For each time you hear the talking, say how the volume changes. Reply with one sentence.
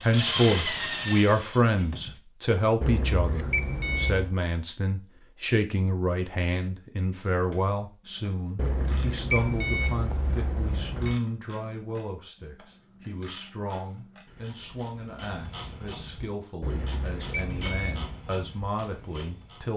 The talking can be heard from 0.0 to 19.7 s, getting quieter.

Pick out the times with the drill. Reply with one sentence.
The drill can be heard from 0.0 to 2.1 s.